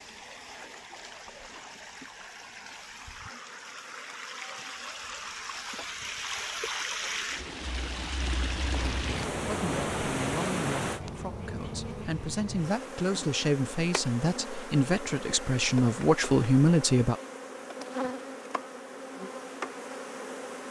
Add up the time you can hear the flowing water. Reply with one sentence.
You can hear the flowing water for 11 seconds altogether.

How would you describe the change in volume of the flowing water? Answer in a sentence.
The volume of the flowing water goes up.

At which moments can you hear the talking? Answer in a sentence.
You can hear the talking from 8.8 to 17.1 s.